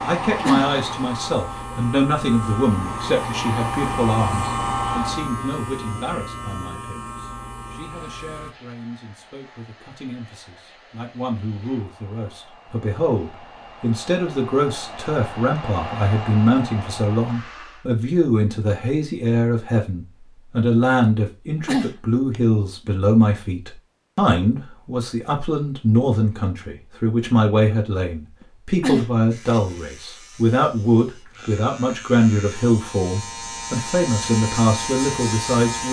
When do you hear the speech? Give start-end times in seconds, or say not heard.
0.0-35.8.